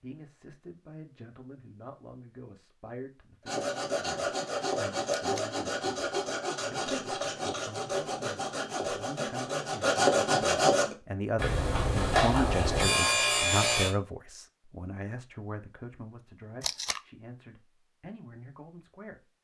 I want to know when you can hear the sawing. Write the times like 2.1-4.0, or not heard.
3.5-13.9.